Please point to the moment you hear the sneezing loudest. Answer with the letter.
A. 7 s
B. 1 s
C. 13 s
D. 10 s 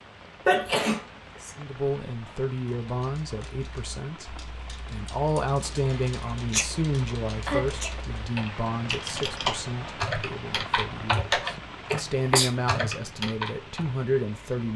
B.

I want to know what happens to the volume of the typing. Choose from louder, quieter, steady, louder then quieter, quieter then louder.
louder.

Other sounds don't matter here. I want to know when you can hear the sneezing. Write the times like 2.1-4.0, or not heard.
0.5-1.5, 5.8-6.8, 7.5-7.9, 11.9-12.5.